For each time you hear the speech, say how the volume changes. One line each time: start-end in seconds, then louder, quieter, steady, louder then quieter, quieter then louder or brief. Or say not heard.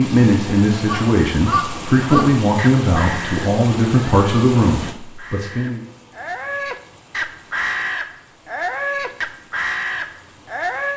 0.0-5.8 steady.